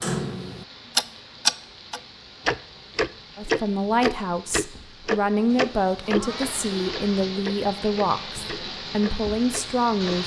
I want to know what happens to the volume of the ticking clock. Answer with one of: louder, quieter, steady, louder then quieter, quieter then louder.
quieter.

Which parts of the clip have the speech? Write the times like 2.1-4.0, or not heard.
3.4-10.2.